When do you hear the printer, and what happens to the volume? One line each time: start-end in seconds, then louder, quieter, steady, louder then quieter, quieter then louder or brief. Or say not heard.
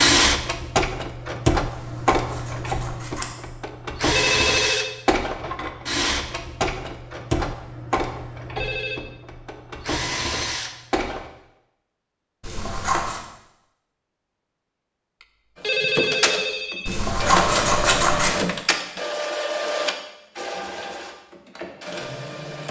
0.0-11.3 quieter
15.6-22.6 quieter.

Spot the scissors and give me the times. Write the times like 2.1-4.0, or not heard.
1.6-3.3, 12.4-13.2, 16.9-18.4.